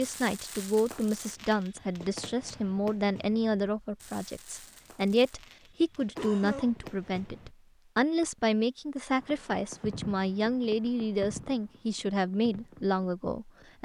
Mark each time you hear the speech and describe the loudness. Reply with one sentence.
The speech can be heard from 0.0 to 13.8 s, at a steady volume.